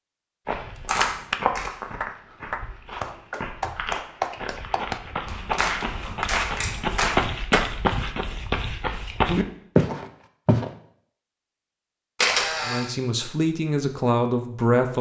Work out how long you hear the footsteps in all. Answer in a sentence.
You can hear the footsteps for 10 seconds altogether.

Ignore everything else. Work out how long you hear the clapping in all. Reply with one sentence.
The clapping can be heard for 7 seconds in total.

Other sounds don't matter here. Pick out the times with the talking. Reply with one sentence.
You can hear the talking from 12.7 to 14.9 s.